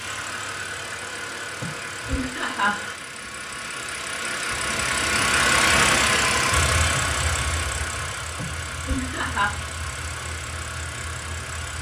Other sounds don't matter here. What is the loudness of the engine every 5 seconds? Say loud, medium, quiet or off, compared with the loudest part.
medium, loud, medium.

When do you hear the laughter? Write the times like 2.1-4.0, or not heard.
1.6-2.8, 8.3-9.5.